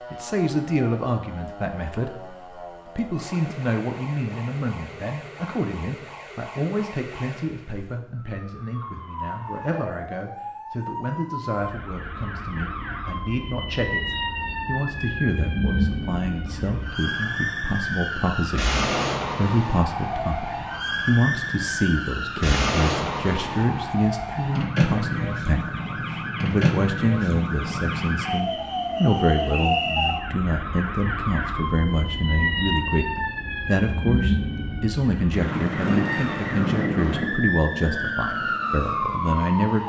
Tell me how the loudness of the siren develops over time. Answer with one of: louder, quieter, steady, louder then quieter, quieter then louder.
louder.